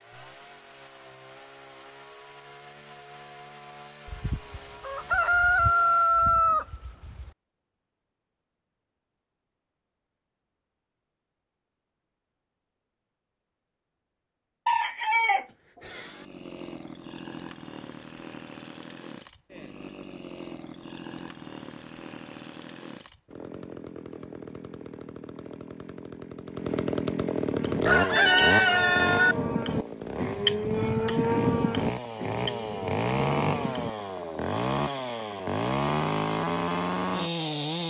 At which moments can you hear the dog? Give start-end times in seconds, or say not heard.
not heard.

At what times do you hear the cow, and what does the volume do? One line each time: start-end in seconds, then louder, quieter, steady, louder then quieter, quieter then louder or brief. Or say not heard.
27.6-33.9 louder then quieter.